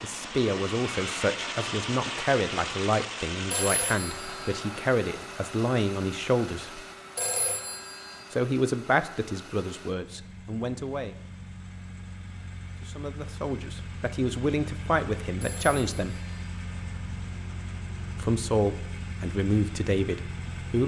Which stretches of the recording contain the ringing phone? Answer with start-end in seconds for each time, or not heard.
3.5-4.5, 7.2-8.2, 15.4-16.4.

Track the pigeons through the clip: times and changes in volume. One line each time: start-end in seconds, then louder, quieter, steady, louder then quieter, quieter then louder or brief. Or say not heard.
not heard.